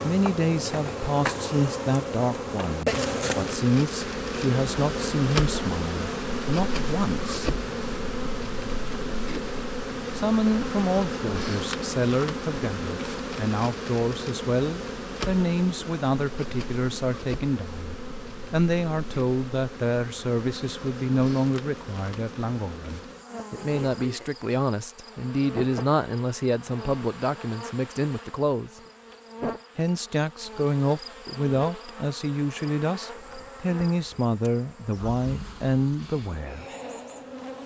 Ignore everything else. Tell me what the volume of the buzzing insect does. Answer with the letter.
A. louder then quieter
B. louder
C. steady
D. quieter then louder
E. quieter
E.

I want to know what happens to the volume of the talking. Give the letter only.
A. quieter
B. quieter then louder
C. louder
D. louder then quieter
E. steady
E.